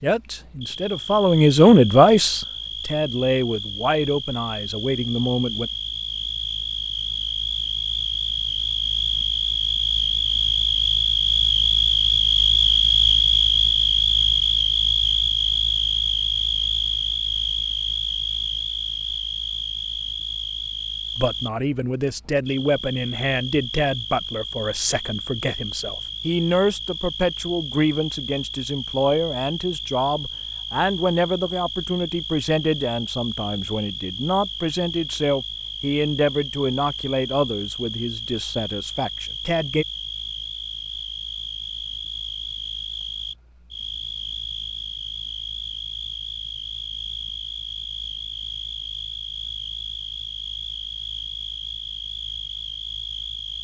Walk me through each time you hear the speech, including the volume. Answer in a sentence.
You can hear the speech from 0.0 to 5.7 s, getting louder then quieter; and from 21.1 to 39.9 s, at a steady volume.